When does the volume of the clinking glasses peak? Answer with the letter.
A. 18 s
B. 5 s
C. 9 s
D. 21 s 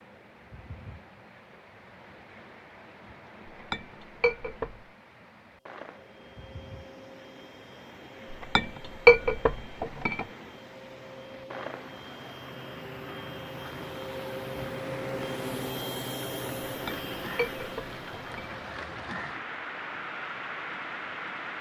C.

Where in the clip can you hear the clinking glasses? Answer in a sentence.
You can hear the clinking glasses from 3.7 to 4.8 s, from 8.6 to 10.2 s and from 16.9 to 18.6 s.